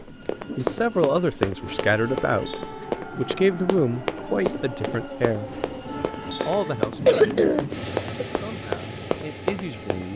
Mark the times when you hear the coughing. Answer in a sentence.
You can hear the coughing from 6.4 to 8.2 s.